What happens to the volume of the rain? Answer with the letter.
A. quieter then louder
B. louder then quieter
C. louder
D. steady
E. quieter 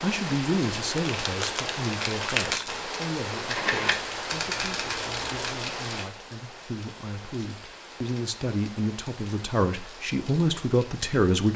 E.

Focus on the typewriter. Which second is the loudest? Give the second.
4 s.